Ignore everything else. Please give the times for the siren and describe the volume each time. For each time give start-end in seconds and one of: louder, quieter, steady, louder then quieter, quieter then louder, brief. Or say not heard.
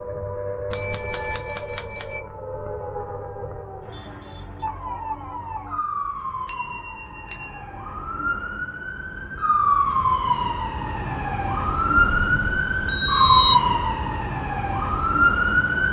0.0-15.8 louder.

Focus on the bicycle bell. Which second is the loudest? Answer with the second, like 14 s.
13 s.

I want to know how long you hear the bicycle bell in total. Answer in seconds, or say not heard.
4 s.